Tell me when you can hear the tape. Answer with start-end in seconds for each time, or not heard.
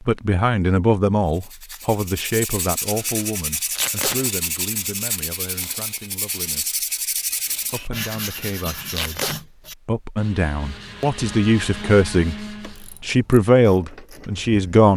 3.8-4.2, 8.9-9.3.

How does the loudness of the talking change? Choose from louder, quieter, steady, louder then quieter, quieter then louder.
quieter then louder.